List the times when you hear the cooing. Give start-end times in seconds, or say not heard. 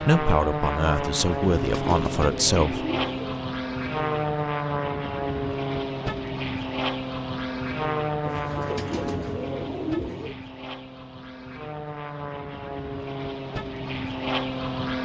1.2-3.4, 8.2-10.3.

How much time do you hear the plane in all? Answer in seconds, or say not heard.
15 s.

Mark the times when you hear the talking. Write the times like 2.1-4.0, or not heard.
0.0-2.9.